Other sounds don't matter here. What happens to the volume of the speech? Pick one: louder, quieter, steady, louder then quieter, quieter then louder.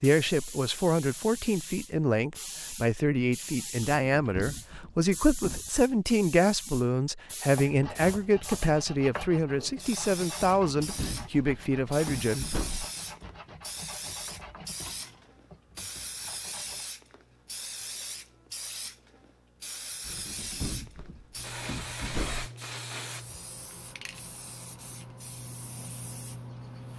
steady.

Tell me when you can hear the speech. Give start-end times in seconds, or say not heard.
0.0-12.6.